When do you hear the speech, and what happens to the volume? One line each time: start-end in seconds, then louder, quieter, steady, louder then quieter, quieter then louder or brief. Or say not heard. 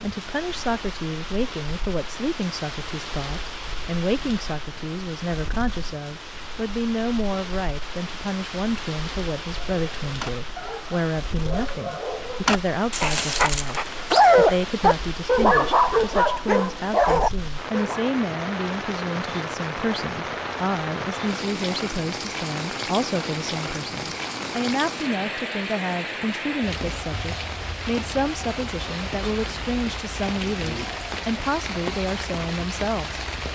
0.0-33.5 steady.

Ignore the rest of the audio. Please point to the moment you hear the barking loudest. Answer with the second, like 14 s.
14 s.